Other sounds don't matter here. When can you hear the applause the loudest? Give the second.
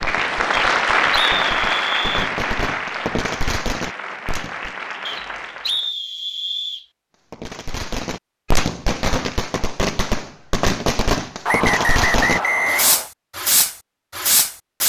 1 s.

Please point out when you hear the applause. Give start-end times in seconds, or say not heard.
0.0-5.9.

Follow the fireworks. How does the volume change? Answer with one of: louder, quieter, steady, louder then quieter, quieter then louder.
louder.